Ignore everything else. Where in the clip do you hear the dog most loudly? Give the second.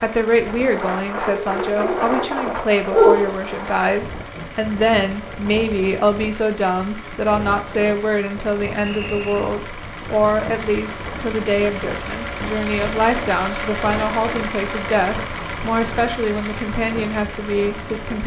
3 s.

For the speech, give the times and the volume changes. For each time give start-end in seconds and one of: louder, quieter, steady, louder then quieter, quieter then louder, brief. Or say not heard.
0.0-18.2 steady.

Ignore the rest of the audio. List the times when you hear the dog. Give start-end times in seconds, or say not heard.
1.2-3.4.